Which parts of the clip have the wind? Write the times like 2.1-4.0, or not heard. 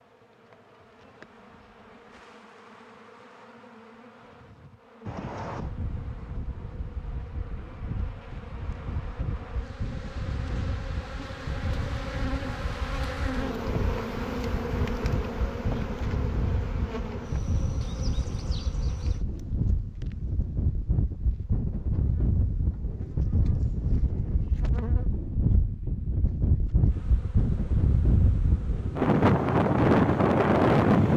5.0-31.1.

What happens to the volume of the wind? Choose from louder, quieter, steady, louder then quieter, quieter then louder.
louder.